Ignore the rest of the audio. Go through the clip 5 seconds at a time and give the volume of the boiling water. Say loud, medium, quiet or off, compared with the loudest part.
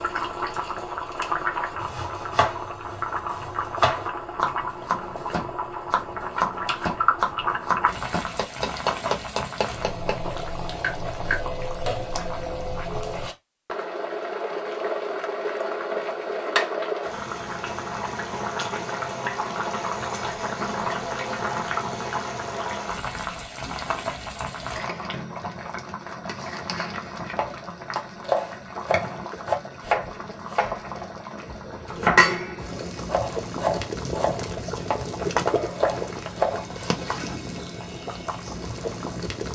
loud, loud, loud, loud, loud, medium, loud, loud.